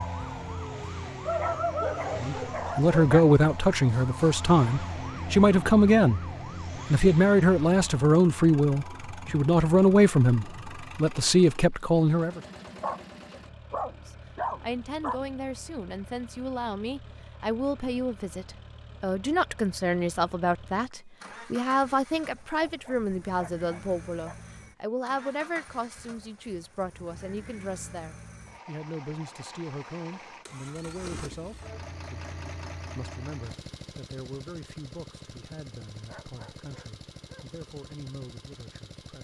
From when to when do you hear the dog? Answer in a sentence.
The dog can be heard from 1.2 to 3.2 s, from 12.8 to 15.2 s, from 22.6 to 24.4 s and from 36.0 to 37.5 s.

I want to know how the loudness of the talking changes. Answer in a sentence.
The volume of the talking goes down.